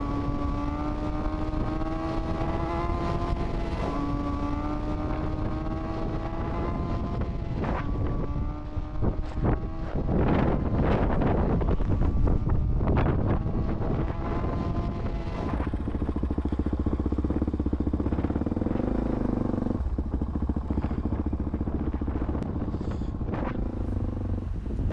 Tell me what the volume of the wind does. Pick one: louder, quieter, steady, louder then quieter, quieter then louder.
louder then quieter.